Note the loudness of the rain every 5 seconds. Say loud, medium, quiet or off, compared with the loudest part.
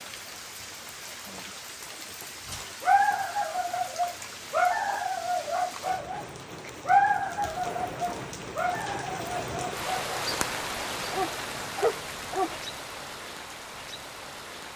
medium, loud, loud.